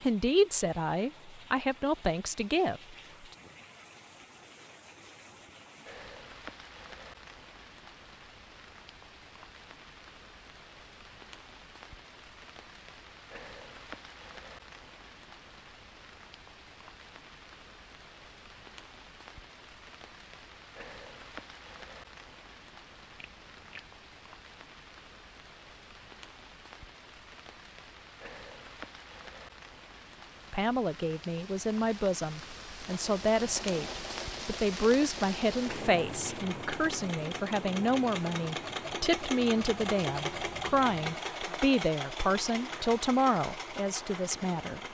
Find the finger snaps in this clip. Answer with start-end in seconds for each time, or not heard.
23.1-24.0.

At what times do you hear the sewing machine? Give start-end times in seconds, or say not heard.
32.9-44.9.